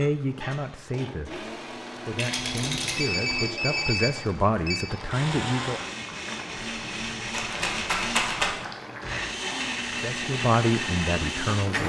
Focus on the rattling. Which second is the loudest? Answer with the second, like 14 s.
8 s.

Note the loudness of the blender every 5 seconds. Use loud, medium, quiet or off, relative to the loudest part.
medium, loud, loud.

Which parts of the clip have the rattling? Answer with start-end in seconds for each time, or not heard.
2.1-3.0, 6.6-8.5.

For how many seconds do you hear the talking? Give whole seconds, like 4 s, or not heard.
8 s.